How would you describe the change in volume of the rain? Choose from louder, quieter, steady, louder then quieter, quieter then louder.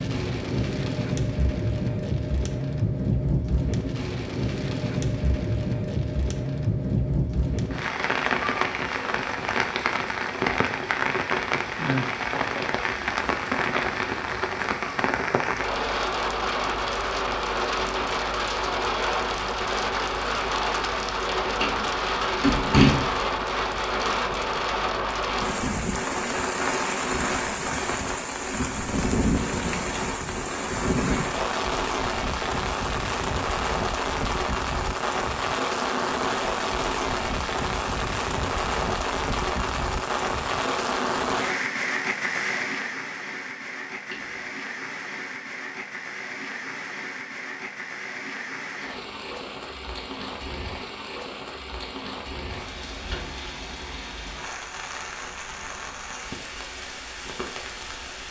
quieter.